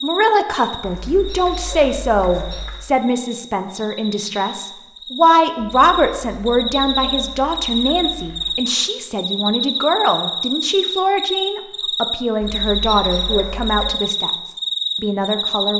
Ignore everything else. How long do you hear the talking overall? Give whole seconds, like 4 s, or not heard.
16 s.